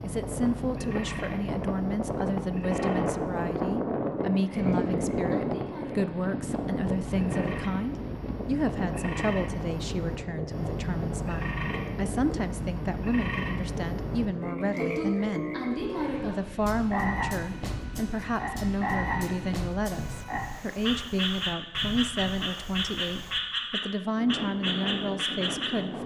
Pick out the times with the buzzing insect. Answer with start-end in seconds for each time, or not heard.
not heard.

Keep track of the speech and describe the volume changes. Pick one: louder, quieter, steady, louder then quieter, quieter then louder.
steady.